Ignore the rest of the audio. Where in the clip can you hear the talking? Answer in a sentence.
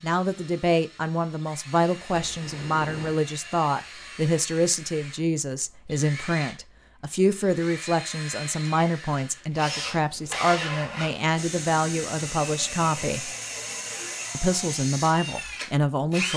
You can hear the talking from 0.0 to 13.3 s and from 14.3 to 16.3 s.